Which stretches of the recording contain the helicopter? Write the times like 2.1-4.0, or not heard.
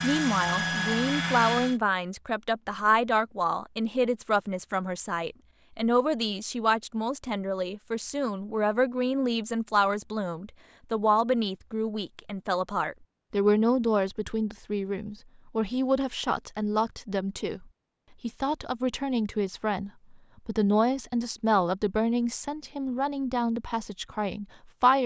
0.0-1.8.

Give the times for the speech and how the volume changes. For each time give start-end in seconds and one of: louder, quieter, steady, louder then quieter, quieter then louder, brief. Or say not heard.
0.0-25.0 steady.